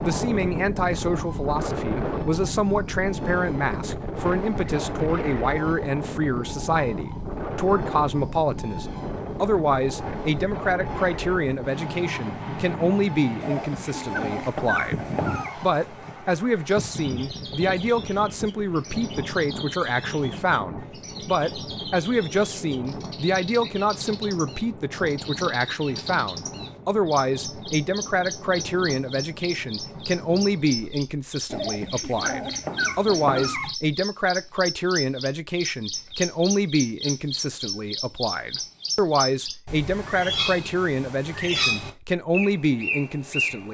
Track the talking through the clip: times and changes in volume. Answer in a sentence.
You can hear the talking from 0.0 to 43.6 s, at a steady volume.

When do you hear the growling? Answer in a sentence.
The growling can be heard from 13.4 to 15.6 s and from 31.5 to 33.8 s.